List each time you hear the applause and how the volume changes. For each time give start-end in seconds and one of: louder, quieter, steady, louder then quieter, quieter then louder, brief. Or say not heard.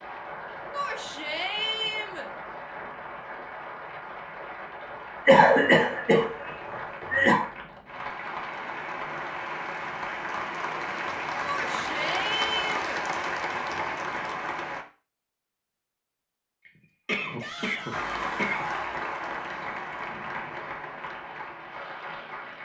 0.0-14.8 louder
17.9-22.5 quieter.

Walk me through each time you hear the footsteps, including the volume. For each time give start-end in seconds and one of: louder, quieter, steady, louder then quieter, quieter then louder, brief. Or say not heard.
not heard.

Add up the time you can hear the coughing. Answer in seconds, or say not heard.
4 s.